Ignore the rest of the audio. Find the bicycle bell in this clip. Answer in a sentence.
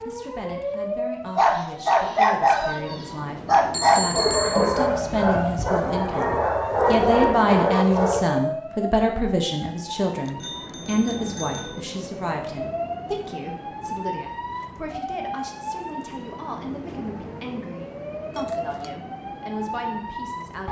You can hear the bicycle bell from 3.7 to 4.9 s, from 10.2 to 11.8 s and from 18.4 to 19.0 s.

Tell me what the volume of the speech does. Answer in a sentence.
The volume of the speech goes up, then down.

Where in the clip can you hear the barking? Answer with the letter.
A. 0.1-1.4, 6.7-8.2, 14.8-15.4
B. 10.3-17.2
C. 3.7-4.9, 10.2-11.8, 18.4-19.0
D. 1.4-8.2
D.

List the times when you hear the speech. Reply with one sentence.
The speech can be heard from 0.1 to 20.6 s.